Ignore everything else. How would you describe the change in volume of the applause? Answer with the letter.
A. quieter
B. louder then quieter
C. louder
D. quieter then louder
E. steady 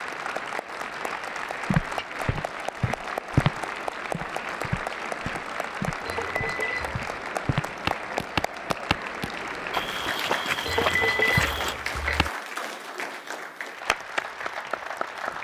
E.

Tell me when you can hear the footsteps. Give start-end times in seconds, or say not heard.
1.7-12.2.